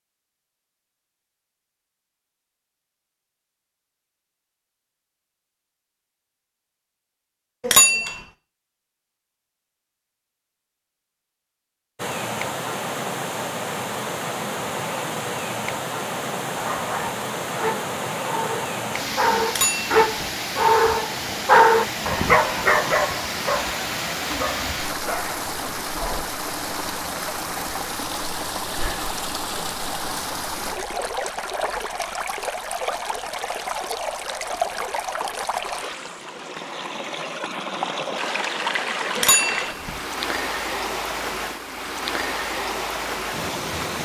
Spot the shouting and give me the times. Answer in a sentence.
You can't hear the shouting here.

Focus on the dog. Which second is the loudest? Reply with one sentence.
The loudest moment of the dog is at 22 seconds.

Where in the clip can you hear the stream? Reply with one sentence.
You can hear the stream from 11.9 to 44.0 s.